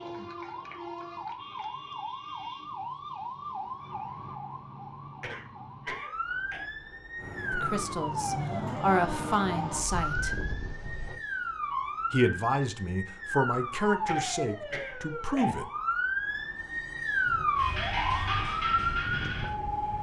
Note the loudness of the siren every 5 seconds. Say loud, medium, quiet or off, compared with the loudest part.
medium, medium, medium, loud.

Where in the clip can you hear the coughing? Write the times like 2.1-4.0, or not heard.
5.2-6.7, 14.1-15.6.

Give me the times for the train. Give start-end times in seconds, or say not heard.
7.2-11.2, 17.2-19.9.